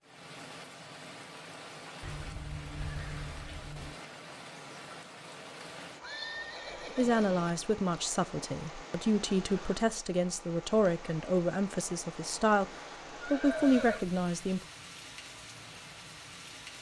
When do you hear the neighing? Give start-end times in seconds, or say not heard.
2.0-4.0, 6.0-7.5, 13.2-14.1.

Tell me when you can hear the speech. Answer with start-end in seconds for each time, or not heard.
7.0-14.6.